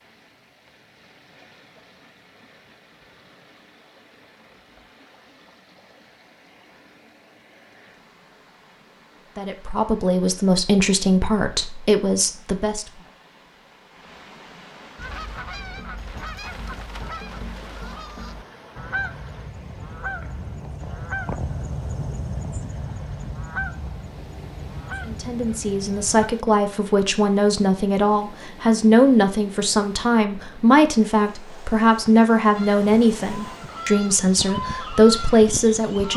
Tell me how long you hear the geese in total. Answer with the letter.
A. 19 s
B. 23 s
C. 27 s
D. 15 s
D.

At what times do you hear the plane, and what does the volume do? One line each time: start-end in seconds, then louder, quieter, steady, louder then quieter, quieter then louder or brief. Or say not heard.
not heard.